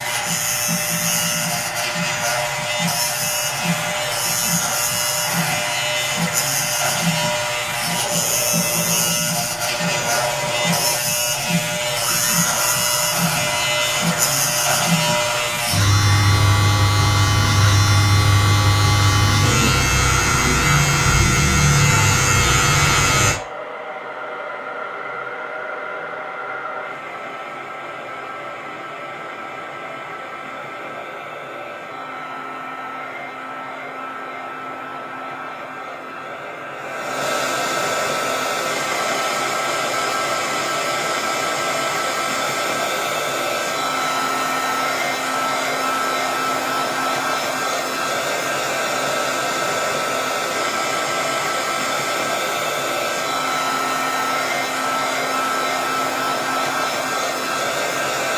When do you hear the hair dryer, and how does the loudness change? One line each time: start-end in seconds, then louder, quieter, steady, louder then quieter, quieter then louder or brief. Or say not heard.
0.0-58.3 louder.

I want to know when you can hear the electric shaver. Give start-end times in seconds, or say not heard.
0.0-23.4.